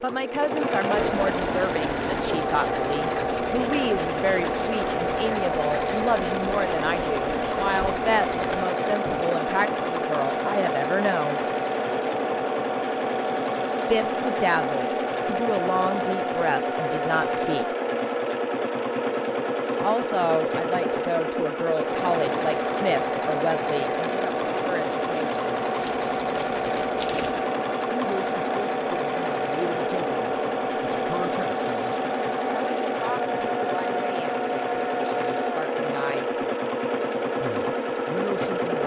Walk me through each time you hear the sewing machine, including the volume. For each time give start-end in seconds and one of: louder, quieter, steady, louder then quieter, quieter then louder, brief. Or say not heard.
0.0-38.8 steady.